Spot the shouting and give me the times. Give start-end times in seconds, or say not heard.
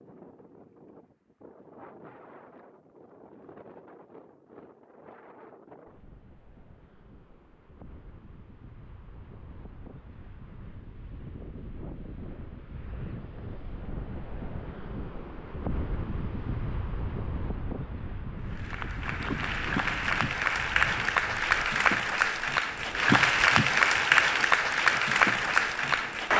not heard.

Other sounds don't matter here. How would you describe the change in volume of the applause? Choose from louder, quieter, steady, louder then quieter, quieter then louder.
louder.